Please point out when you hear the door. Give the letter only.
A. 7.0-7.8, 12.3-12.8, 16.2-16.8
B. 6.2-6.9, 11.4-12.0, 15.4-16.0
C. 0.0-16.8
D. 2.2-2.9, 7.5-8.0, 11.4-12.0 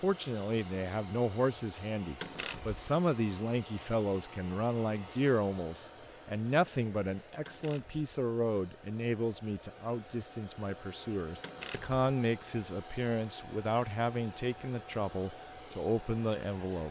D.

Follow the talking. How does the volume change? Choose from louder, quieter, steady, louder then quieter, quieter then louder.
steady.